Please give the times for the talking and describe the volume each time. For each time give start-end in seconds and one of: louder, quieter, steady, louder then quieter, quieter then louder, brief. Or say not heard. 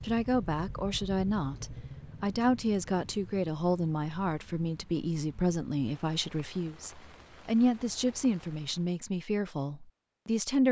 0.0-10.6 steady.